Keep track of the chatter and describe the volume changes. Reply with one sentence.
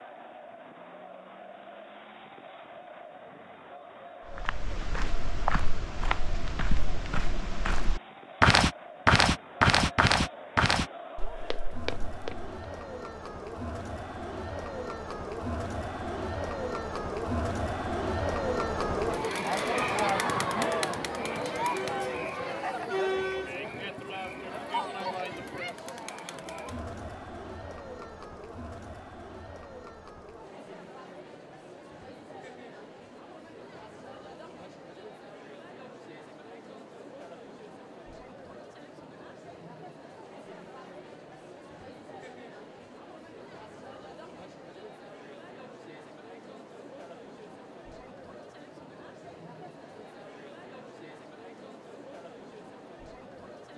The loudness of the chatter goes up, then down.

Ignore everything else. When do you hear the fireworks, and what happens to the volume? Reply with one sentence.
You can't hear the fireworks here.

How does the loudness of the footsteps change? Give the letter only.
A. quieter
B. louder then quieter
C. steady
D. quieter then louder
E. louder
B.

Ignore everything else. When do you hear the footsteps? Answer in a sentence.
You can hear the footsteps from 4.3 to 12.6 s.